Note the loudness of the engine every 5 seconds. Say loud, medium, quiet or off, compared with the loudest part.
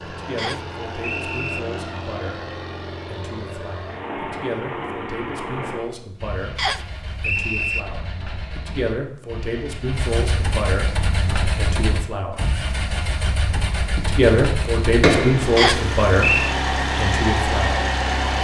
medium, quiet, medium, loud.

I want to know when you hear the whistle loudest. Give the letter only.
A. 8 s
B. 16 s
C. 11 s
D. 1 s
B.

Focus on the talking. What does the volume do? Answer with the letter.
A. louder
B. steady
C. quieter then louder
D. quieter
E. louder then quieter
A.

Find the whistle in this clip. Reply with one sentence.
The whistle can be heard from 0.3 to 1.6 s, from 6.5 to 7.8 s and from 15.6 to 16.6 s.